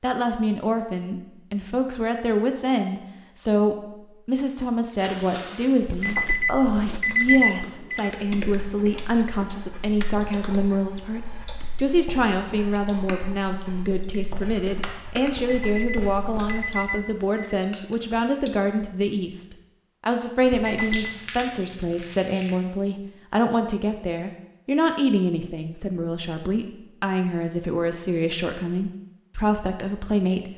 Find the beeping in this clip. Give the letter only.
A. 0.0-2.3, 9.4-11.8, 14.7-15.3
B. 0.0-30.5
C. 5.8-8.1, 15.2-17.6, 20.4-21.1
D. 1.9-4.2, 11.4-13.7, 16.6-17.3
C.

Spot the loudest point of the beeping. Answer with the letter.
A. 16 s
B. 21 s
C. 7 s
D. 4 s
C.